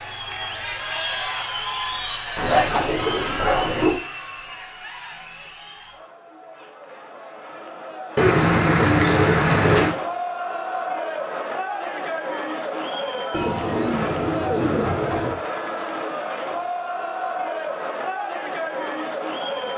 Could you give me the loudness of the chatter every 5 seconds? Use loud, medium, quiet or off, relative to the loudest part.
loud, medium, loud, loud.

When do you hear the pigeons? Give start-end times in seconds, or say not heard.
2.4-4.0, 8.2-9.9, 13.3-15.3.